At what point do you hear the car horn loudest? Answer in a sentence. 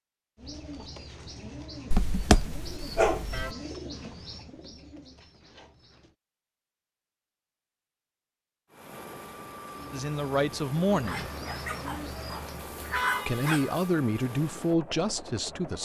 The loudest moment of the car horn is at 13 seconds.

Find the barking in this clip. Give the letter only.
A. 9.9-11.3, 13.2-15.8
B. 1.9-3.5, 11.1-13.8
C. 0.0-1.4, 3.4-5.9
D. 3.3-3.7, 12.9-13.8
B.